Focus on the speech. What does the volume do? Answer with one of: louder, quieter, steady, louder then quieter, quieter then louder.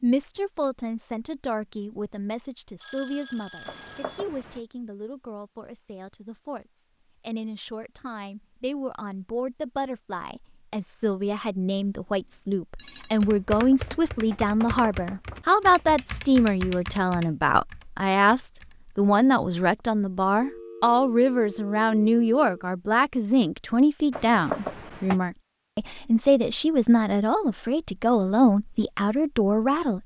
louder.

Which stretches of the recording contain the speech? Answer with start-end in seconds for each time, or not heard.
0.0-30.0.